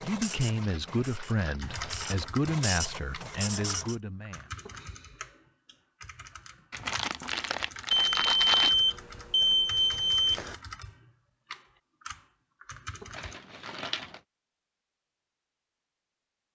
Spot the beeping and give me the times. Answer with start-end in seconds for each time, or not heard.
7.9-10.6.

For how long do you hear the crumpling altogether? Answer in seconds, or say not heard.
5 s.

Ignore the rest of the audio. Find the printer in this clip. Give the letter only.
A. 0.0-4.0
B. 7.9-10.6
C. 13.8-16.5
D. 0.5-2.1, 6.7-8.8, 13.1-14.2
A.